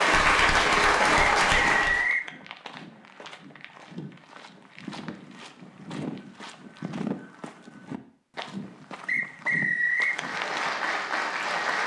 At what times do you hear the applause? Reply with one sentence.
You can hear the applause from 0.0 to 2.1 s and from 10.1 to 11.8 s.